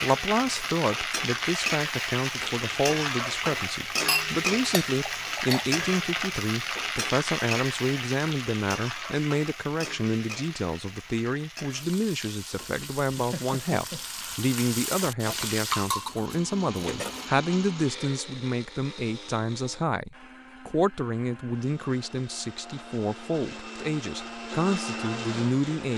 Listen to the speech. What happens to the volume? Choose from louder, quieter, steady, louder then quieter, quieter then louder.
steady.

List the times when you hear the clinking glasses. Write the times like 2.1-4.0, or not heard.
4.0-5.7, 15.7-17.2.